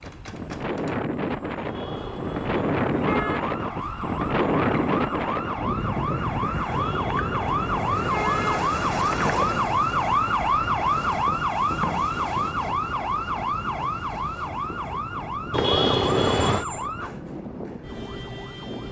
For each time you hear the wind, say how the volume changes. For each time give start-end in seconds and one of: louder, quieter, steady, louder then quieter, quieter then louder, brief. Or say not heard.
0.0-18.8 quieter.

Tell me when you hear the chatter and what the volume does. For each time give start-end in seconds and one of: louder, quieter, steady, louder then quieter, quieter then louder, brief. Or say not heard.
not heard.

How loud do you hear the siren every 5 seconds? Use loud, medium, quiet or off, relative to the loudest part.
medium, loud, loud, medium.